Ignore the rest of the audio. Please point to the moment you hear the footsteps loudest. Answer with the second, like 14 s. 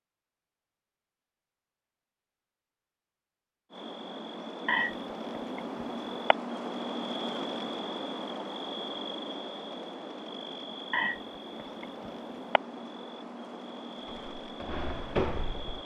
15 s.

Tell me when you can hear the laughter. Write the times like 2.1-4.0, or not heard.
4.7-6.3, 10.9-12.6.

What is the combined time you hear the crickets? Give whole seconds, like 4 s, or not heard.
12 s.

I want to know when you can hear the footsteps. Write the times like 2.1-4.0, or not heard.
14.0-15.8.